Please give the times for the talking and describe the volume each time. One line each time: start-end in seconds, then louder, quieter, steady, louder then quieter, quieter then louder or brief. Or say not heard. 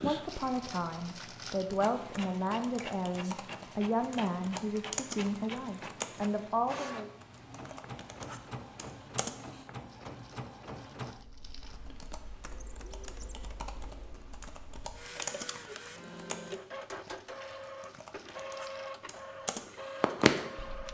0.0-7.1 steady.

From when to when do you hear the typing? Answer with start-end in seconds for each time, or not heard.
0.0-9.7, 11.6-20.8.